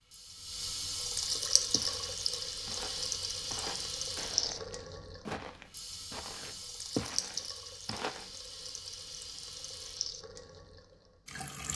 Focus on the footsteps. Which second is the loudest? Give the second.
7 s.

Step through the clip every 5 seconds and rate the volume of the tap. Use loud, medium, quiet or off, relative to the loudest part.
loud, medium, medium.